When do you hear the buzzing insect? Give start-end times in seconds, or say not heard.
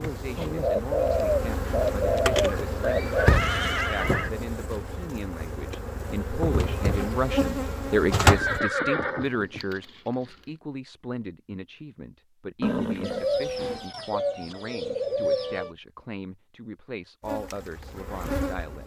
0.0-8.6, 17.2-18.8.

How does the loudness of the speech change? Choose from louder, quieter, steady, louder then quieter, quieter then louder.
louder then quieter.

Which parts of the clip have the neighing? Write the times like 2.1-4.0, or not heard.
3.1-4.3, 8.2-9.6, 12.6-13.8.